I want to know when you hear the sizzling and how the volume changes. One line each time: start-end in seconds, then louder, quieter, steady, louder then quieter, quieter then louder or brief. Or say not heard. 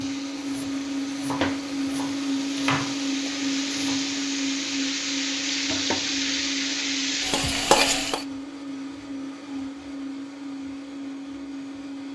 0.0-8.2 louder.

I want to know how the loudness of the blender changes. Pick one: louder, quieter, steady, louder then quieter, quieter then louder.
quieter.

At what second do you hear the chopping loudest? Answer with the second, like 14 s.
3 s.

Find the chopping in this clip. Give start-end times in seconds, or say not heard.
0.0-4.0.